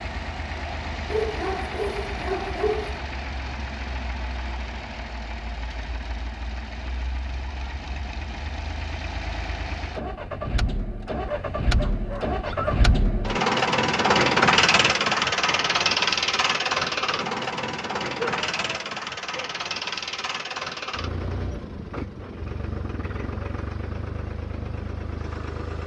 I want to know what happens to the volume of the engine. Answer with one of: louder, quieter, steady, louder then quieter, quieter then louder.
louder then quieter.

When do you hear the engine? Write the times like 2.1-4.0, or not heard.
0.0-25.8.